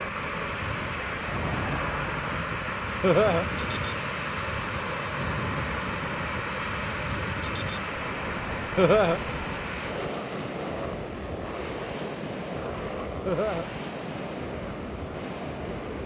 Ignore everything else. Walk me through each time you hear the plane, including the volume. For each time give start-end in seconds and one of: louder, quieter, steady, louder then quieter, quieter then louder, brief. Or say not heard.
0.0-16.0 quieter.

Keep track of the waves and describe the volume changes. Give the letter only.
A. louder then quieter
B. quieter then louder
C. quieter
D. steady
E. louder
D.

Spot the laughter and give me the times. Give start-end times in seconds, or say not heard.
3.0-3.5, 8.8-9.2, 13.2-13.7.